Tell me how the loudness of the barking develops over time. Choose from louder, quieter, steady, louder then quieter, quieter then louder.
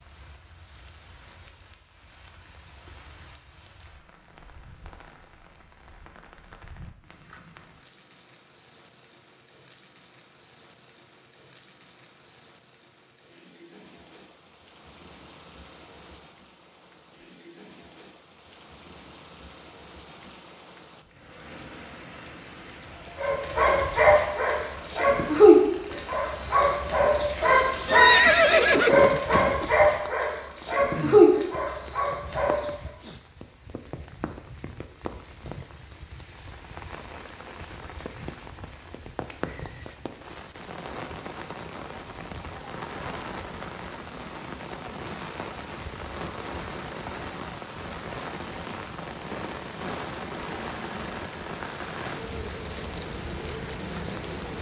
steady.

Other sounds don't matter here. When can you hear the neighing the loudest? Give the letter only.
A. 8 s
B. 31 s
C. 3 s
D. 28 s
D.